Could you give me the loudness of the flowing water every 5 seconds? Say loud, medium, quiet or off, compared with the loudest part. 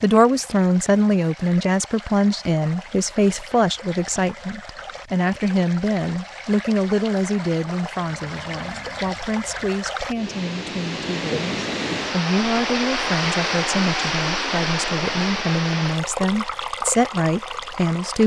quiet, medium, loud, loud.